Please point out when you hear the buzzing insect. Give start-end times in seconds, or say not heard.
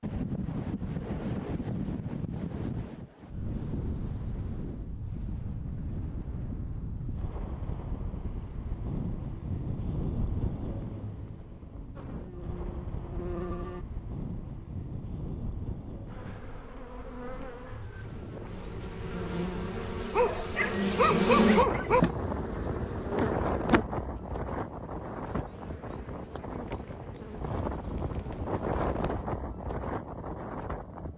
11.9-13.8, 16.1-29.2.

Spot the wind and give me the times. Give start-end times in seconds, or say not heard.
0.0-31.1.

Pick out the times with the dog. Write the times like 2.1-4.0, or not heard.
20.1-22.0.